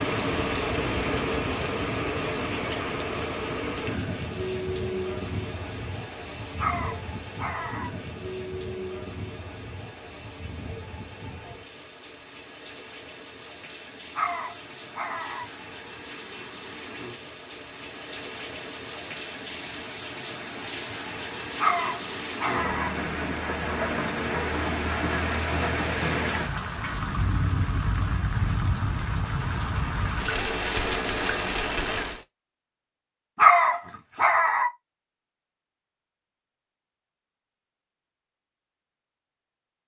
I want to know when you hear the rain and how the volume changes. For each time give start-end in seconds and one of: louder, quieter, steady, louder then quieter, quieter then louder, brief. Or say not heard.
0.0-32.2 quieter then louder.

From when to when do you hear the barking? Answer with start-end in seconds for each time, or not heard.
6.5-7.9, 14.2-15.4, 21.6-22.9, 33.4-34.7.